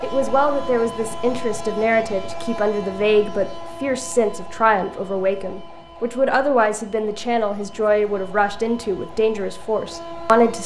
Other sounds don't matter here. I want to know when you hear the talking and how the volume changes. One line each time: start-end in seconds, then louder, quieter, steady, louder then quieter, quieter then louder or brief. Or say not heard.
0.0-10.6 steady.